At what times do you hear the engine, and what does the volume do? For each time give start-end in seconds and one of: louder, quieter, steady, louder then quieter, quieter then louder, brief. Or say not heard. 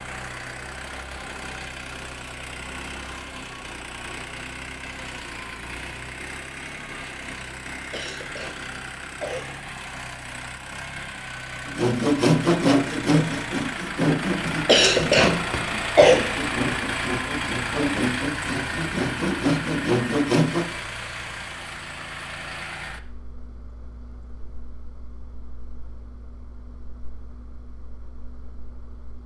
0.0-29.2 louder then quieter.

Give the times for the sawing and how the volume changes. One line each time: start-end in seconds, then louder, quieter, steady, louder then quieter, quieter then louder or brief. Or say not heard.
11.7-20.7 quieter then louder.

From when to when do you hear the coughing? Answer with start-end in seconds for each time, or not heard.
7.9-9.4, 14.7-16.2.